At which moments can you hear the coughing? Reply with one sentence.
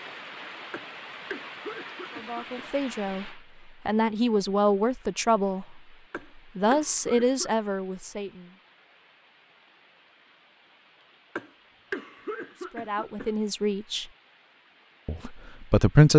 The coughing can be heard from 0.7 to 2.6 s, from 6.1 to 7.5 s and from 11.3 to 13.3 s.